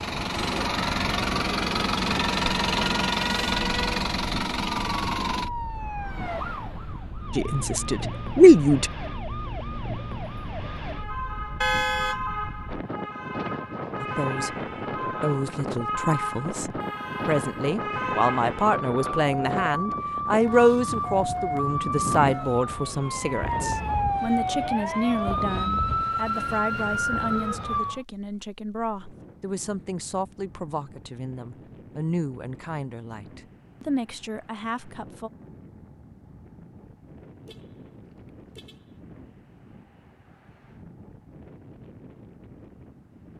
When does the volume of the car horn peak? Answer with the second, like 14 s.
12 s.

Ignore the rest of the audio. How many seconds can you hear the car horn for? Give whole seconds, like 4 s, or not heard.
3 s.